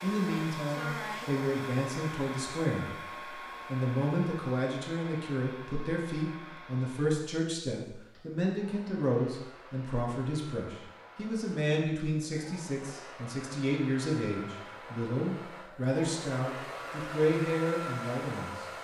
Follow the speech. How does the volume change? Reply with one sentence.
The loudness of the speech stays about the same.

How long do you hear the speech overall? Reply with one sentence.
The speech can be heard for 19 seconds in total.